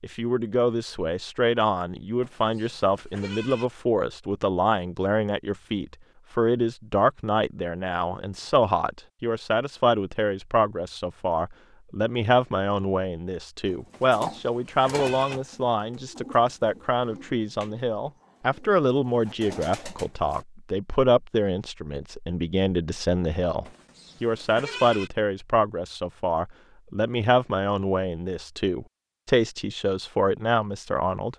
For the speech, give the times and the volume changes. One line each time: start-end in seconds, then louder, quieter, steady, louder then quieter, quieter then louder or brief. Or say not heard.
0.0-31.3 steady.